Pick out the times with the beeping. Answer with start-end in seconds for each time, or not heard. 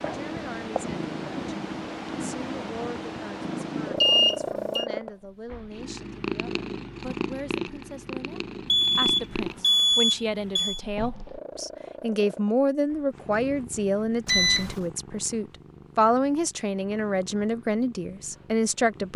4.0-4.8, 8.7-10.8, 14.2-14.8.